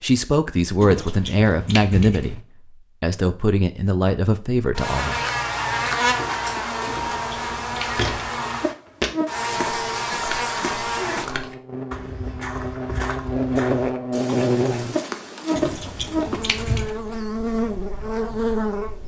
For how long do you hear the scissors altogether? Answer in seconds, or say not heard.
4 s.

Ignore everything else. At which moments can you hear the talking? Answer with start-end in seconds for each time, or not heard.
0.0-2.4, 3.0-5.2.